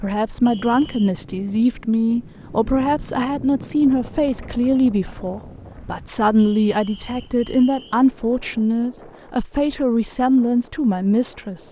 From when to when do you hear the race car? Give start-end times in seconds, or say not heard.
not heard.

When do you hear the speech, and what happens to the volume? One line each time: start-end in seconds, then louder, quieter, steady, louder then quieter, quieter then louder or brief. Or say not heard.
0.0-11.6 steady.